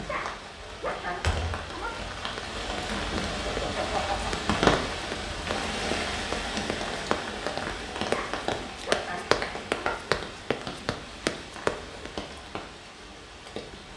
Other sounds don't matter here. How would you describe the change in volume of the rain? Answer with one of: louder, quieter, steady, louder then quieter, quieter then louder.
louder then quieter.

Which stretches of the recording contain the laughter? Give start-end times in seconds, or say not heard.
2.8-4.3.